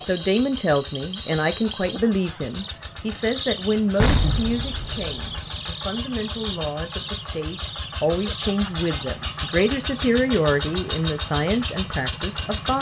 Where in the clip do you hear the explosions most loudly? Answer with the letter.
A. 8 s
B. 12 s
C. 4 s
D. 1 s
C.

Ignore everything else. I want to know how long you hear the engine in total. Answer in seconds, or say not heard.
13 s.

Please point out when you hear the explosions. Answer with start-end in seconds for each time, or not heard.
4.0-5.5.